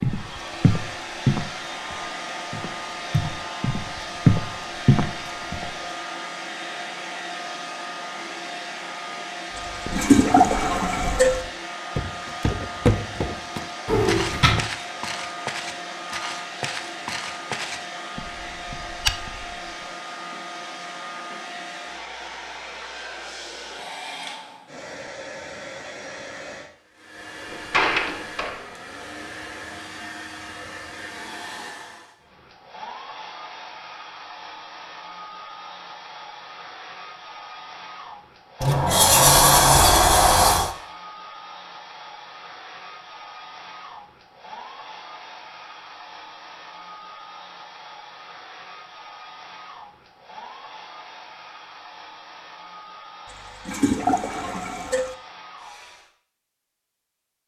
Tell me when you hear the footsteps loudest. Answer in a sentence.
The loudest moment of the footsteps is at 4 seconds.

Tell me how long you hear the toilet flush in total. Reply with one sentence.
You can hear the toilet flush for 4 seconds altogether.